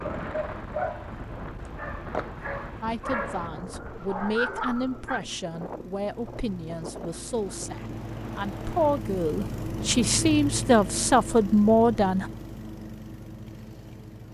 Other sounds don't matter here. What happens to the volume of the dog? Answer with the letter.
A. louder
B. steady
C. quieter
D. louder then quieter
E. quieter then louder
E.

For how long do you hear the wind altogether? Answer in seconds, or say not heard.
9 s.